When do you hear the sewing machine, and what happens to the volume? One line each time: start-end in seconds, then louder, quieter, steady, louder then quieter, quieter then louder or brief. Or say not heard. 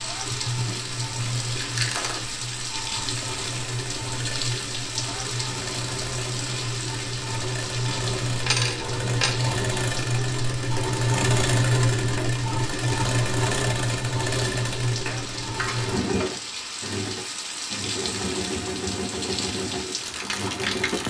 0.0-21.0 louder then quieter.